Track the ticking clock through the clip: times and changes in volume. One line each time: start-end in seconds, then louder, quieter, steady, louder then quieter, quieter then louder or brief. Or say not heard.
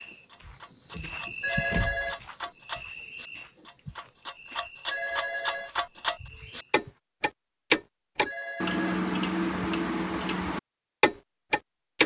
0.0-12.0 louder.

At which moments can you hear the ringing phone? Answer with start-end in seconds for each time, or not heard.
1.4-2.2, 4.9-5.7, 8.2-9.0.